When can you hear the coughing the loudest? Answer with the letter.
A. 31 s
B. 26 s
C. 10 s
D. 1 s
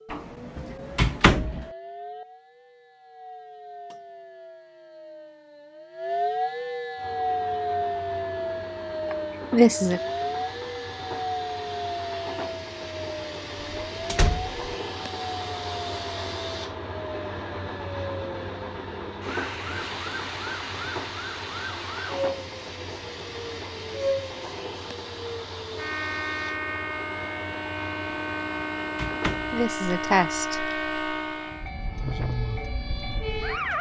C.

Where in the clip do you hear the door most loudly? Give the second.
1 s.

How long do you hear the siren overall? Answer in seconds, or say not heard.
34 s.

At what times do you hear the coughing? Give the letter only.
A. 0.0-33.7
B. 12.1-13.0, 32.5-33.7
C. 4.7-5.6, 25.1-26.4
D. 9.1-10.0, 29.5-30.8
D.